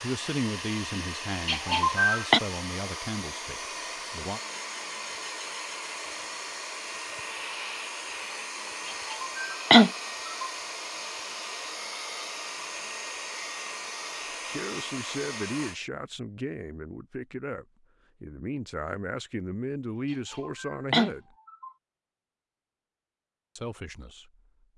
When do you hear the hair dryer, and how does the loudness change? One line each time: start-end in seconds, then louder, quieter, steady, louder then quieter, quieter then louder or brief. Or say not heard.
0.0-15.8 steady.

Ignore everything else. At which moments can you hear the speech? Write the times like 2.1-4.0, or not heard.
0.0-4.4, 14.4-21.4, 23.6-24.7.